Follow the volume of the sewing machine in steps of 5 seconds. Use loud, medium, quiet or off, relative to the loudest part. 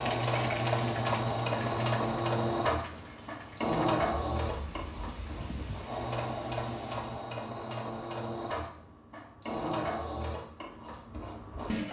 loud, medium, medium.